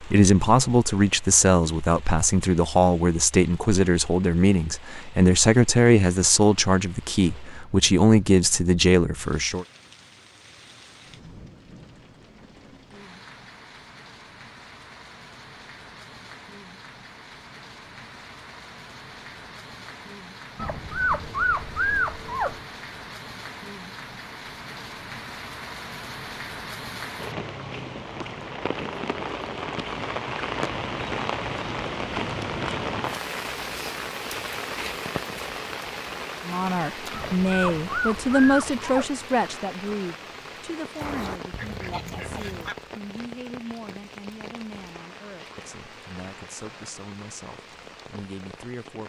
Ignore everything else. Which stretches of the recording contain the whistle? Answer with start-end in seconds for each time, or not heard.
not heard.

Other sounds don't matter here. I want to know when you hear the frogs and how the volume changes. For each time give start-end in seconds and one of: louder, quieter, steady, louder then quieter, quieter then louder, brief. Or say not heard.
not heard.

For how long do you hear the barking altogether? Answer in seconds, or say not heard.
4 s.